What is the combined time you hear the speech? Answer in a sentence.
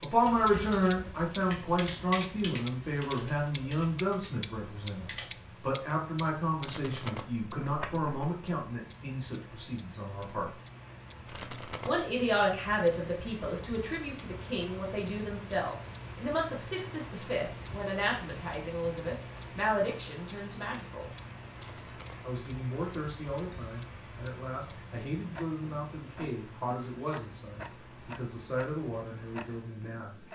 You can hear the speech for 28 seconds altogether.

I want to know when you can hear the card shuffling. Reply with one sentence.
You can hear the card shuffling from 6.6 to 8.3 s, from 11.2 to 12.1 s and from 21.5 to 22.4 s.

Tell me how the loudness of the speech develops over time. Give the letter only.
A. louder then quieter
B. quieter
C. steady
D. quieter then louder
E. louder
B.